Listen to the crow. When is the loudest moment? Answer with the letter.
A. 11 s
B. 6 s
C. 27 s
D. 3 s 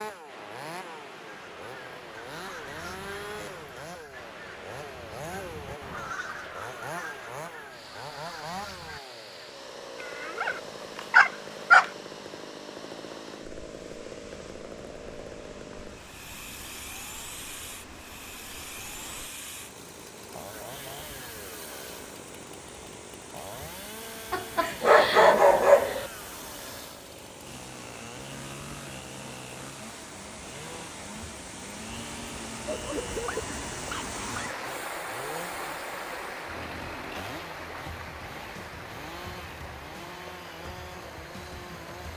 B.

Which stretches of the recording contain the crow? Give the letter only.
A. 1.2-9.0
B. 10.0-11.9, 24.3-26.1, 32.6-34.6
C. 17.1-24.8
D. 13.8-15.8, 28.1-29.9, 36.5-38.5
A.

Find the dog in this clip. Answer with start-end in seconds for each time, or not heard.
10.0-11.9, 24.3-26.1, 32.6-34.6.